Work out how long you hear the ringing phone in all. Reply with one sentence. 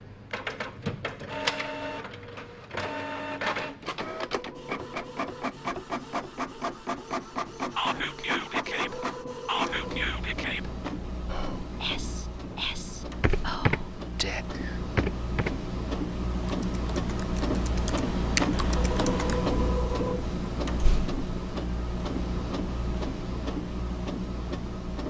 The ringing phone can be heard for 4 seconds in total.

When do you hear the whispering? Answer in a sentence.
The whispering can be heard from 7.8 to 14.4 s.